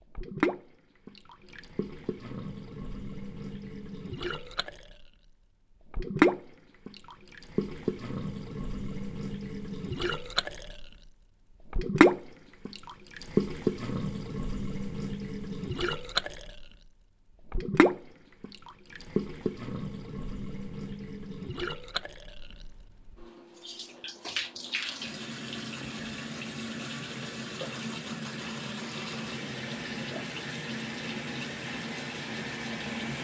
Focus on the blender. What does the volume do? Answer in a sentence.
The loudness of the blender goes up.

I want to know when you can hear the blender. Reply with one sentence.
The blender can be heard from 24.6 to 33.2 s.